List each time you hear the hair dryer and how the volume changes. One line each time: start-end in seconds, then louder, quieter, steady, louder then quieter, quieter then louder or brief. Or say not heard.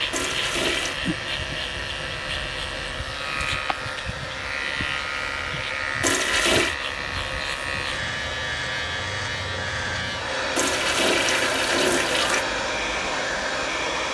0.0-14.1 louder.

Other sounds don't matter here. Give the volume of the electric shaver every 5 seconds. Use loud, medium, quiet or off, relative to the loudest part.
loud, loud, medium.